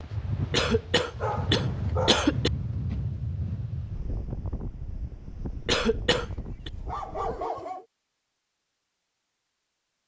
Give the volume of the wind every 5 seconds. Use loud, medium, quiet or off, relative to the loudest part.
loud, medium.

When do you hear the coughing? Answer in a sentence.
The coughing can be heard from 0.5 to 2.5 s and from 5.7 to 6.7 s.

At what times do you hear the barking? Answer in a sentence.
You can hear the barking from 1.1 to 2.2 s and from 6.2 to 7.8 s.